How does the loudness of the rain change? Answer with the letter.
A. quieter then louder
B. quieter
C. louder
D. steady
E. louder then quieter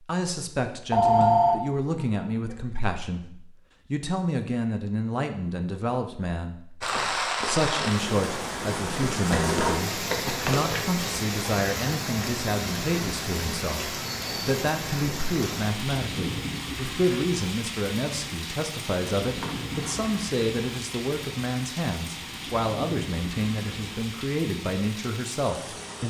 B.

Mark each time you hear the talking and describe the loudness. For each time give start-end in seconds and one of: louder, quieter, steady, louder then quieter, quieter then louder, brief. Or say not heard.
0.0-26.0 steady.